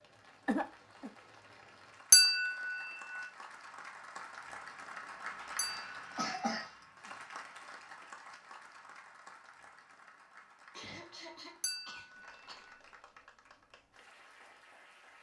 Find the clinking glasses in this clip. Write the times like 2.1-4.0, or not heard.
2.1-2.8, 5.5-6.0, 11.6-12.2.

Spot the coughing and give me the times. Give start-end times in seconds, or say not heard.
0.5-1.1, 5.4-6.8, 10.7-12.7.